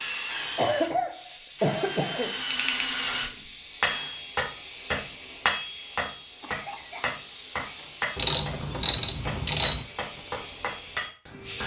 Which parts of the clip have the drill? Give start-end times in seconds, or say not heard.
0.0-4.2.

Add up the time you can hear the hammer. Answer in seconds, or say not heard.
8 s.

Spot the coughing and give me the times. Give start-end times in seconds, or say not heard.
0.6-2.4, 6.4-7.9.